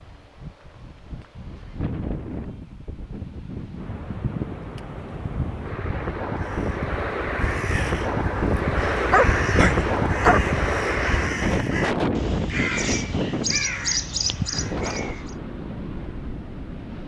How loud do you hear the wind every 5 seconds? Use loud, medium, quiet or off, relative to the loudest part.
medium, loud, loud, medium.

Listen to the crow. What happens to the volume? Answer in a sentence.
The volume of the crow goes up.